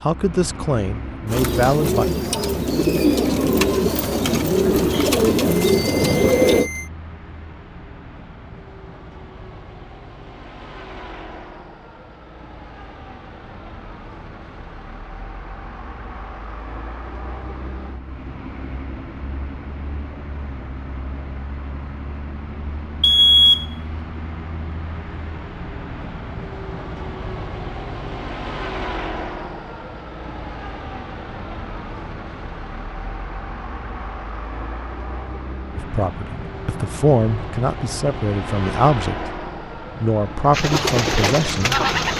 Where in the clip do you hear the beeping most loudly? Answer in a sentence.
The volume of the beeping peaks at 23 seconds.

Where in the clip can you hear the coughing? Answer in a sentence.
The coughing can't be heard in this clip.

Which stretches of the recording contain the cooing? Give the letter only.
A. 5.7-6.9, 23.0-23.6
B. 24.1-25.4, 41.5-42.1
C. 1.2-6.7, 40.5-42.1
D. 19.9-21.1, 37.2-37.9
C.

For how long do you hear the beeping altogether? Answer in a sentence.
The beeping can be heard for 2 seconds in total.